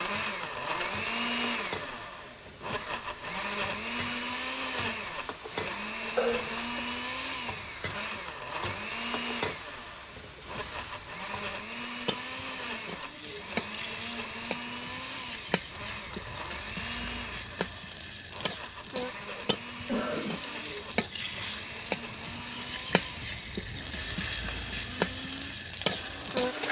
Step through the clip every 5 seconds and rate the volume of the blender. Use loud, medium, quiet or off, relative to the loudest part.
loud, loud, medium, medium, medium, medium.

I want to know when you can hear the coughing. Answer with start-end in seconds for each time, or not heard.
6.2-6.8, 19.2-20.4.